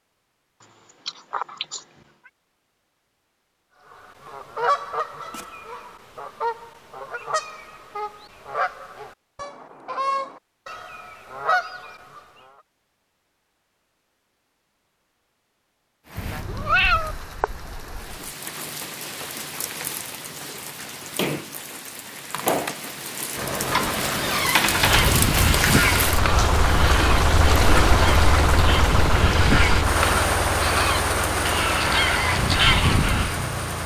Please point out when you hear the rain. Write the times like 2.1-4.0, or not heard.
16.1-33.8.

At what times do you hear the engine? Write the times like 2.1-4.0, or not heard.
23.4-33.8.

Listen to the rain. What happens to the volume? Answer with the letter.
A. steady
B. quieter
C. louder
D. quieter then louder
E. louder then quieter
C.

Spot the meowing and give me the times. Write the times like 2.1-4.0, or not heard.
0.6-1.9, 16.1-17.1, 23.7-25.1.